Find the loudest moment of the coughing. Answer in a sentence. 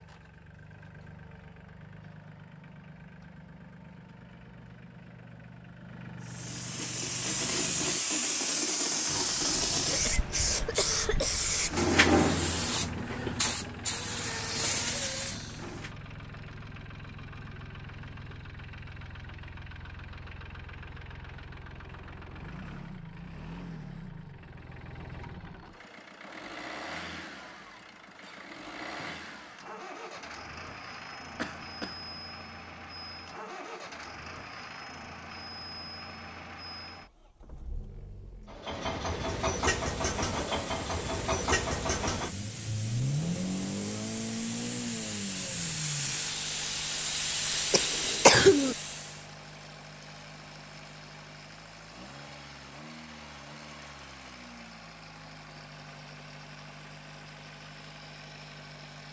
The volume of the coughing peaks at 48 seconds.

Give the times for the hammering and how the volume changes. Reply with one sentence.
You can't hear the hammering here.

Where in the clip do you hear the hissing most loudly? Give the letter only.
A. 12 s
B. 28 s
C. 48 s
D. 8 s
A.